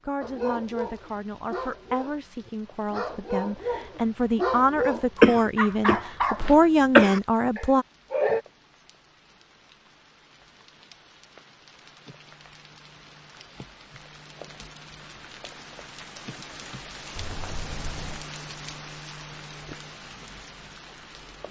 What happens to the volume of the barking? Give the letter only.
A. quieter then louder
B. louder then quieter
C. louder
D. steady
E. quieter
B.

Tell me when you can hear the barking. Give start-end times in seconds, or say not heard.
0.2-8.4.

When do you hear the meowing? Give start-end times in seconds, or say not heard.
17.1-18.2.